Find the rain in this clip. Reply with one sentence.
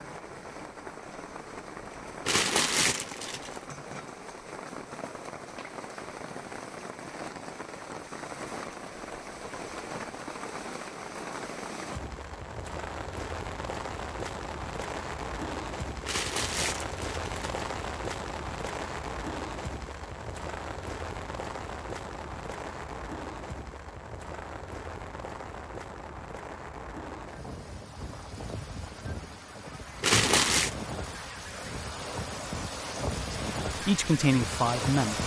You can hear the rain from 0.0 to 35.2 s.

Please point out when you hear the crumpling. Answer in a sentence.
The crumpling can be heard from 2.2 to 3.6 s, from 16.1 to 17.6 s and from 30.0 to 30.8 s.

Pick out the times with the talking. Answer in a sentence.
You can hear the talking from 33.3 to 35.2 s.